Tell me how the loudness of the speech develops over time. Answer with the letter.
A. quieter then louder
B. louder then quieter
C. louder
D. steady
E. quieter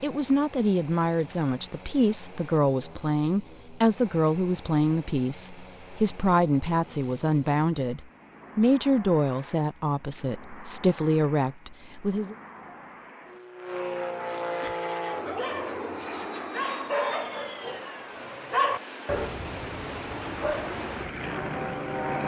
D.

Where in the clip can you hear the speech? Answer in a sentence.
You can hear the speech from 0.0 to 12.3 s.